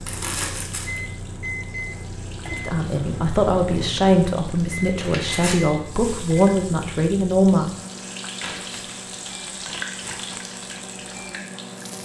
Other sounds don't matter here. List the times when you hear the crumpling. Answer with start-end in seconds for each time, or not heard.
0.1-1.0, 5.0-5.6, 8.4-10.4.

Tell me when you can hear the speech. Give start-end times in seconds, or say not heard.
2.5-7.7.